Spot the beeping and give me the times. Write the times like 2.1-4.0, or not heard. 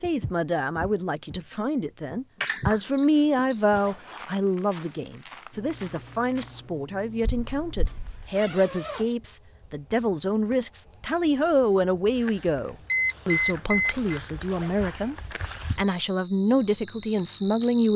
2.4-3.8, 7.2-8.2, 12.9-14.2.